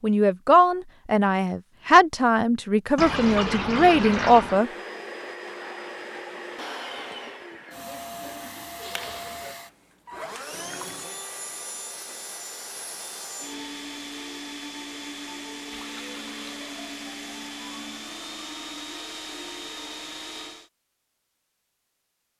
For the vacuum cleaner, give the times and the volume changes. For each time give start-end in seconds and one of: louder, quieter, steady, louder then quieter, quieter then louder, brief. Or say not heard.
4.4-20.7 steady.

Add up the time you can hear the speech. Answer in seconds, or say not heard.
5 s.